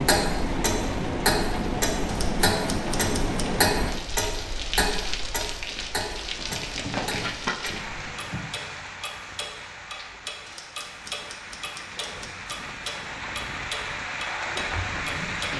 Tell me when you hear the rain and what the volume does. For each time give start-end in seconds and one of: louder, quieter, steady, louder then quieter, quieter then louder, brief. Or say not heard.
0.0-15.5 quieter then louder.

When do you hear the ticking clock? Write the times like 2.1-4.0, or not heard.
0.0-15.5.